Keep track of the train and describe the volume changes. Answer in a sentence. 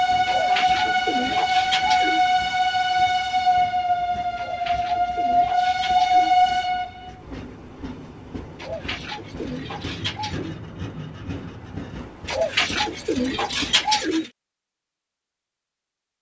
The loudness of the train goes down.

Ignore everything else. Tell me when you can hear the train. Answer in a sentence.
The train can be heard from 0.0 to 13.8 s.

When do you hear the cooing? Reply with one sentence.
The cooing can be heard from 0.2 to 2.2 s, from 4.3 to 6.4 s, from 8.6 to 10.6 s and from 12.2 to 14.3 s.